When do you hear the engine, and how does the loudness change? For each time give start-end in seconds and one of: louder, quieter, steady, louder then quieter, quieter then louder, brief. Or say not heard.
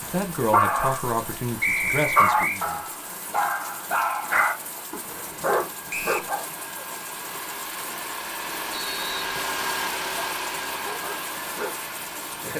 0.1-12.5 louder.